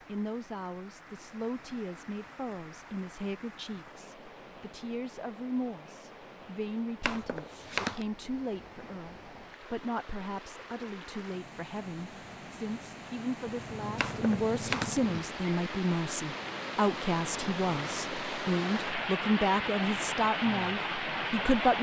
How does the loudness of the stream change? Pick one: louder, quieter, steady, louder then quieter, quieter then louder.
louder.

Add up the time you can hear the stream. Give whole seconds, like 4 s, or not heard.
22 s.